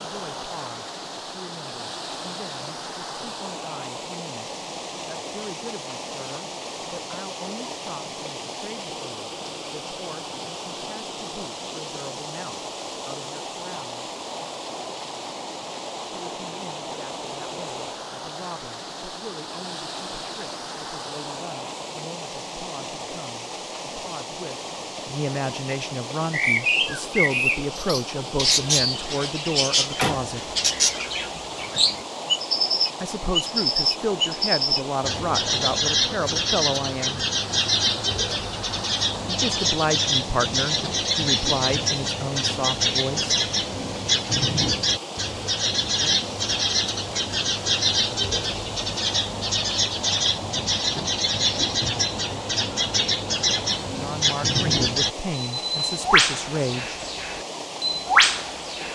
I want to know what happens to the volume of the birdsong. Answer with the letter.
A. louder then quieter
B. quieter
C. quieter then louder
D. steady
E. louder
D.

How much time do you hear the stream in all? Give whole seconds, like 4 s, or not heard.
59 s.